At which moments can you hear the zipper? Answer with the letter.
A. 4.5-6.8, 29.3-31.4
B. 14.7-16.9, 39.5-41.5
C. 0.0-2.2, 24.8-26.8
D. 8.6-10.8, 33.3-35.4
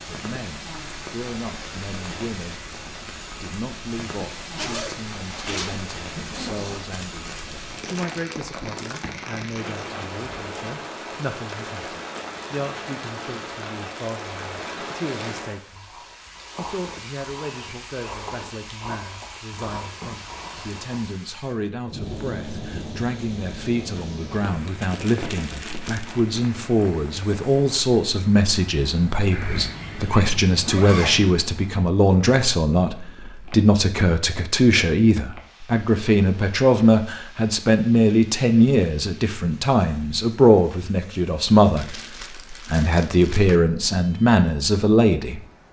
A.